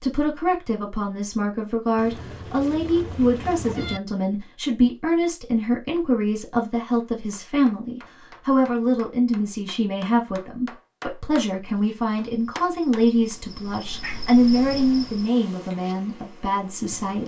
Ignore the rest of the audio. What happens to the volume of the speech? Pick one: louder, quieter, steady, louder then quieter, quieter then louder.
steady.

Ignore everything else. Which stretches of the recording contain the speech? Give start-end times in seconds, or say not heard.
0.0-17.2.